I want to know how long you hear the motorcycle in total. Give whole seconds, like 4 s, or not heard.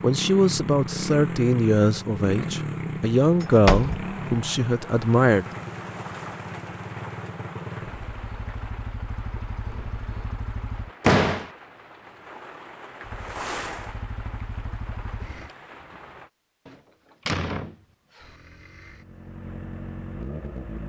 16 s.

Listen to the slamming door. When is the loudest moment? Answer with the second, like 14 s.
11 s.